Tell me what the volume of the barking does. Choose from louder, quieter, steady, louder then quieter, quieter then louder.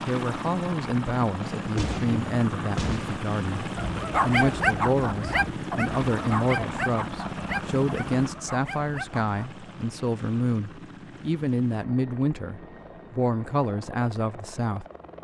quieter.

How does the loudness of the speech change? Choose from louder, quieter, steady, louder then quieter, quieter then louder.
steady.